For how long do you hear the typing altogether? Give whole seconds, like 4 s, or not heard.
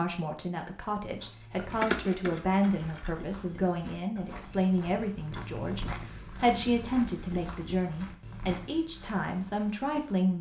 2 s.